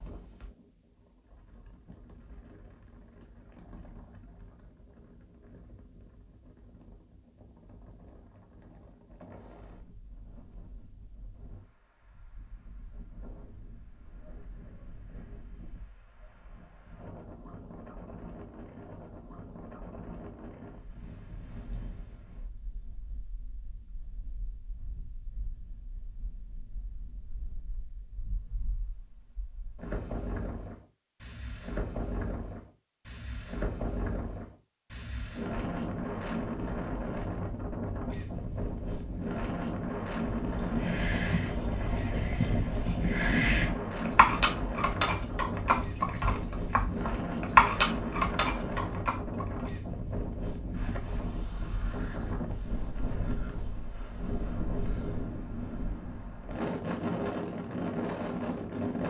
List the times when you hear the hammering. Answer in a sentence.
You can't hear the hammering here.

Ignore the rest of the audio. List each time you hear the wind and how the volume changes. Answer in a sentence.
You can hear the wind from 0.0 to 59.0 s, getting louder.